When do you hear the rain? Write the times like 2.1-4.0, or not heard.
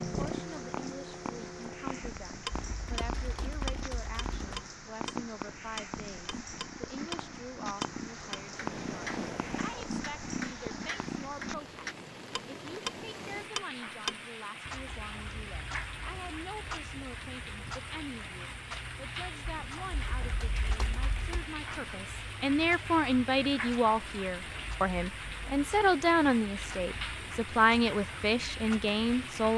0.0-29.5.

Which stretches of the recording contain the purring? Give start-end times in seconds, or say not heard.
0.0-11.7.